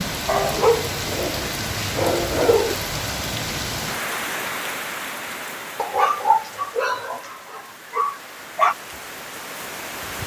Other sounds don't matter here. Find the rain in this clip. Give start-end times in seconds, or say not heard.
0.0-10.2.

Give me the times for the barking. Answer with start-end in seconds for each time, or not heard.
0.2-2.8, 5.8-8.8.